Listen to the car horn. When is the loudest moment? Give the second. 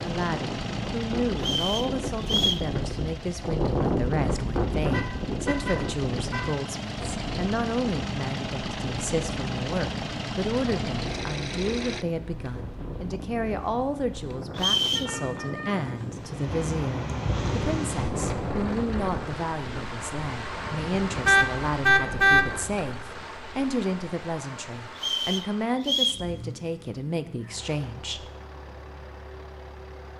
22 s.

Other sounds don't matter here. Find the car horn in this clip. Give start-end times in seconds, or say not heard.
4.9-6.6, 14.9-16.2, 21.2-22.4.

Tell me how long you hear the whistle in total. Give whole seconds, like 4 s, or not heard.
3 s.